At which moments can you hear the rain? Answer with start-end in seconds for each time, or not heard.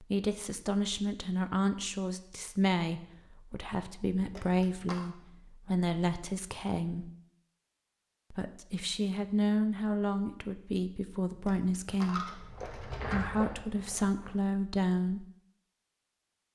not heard.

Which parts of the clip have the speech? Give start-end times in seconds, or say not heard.
0.0-7.1, 8.3-15.2.